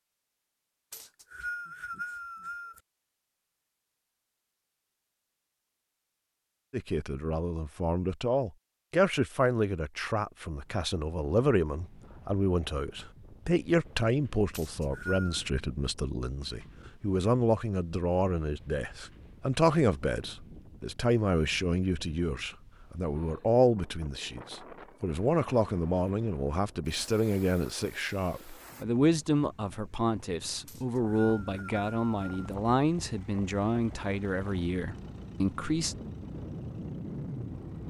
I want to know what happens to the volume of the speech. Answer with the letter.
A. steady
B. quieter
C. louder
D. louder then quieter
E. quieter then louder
A.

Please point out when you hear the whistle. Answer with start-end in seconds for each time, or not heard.
0.9-2.8, 14.5-15.4, 30.6-32.5.